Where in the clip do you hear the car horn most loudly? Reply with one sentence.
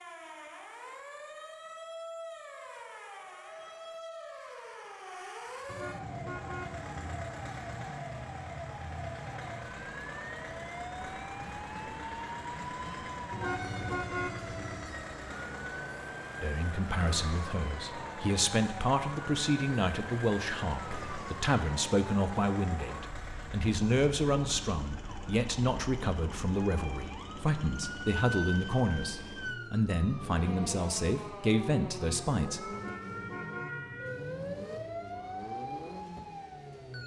The loudest moment of the car horn is at 14 seconds.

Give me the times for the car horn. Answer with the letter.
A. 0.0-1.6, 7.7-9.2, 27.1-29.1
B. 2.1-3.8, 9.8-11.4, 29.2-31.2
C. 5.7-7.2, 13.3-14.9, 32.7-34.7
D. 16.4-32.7
C.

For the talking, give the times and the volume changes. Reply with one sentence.
You can hear the talking from 16.4 to 32.7 s, at a steady volume.